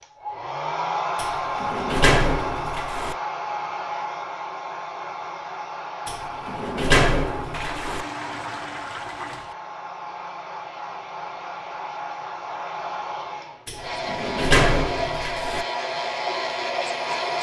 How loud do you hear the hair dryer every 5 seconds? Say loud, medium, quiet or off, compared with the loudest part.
loud, medium, medium, loud.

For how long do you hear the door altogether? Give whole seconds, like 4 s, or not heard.
6 s.